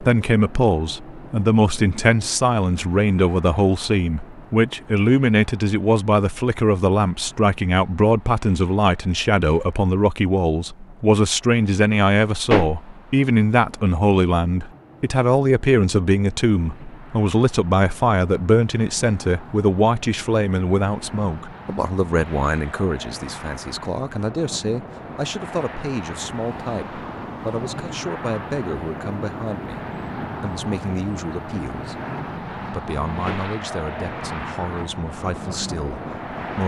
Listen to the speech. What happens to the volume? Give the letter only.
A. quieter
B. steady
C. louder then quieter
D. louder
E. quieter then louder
A.